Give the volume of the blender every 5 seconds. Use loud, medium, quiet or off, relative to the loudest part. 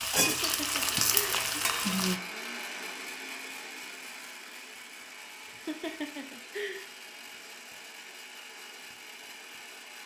loud, medium.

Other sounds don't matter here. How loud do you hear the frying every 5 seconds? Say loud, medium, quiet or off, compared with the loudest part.
loud, off.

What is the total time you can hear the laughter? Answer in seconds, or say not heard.
3 s.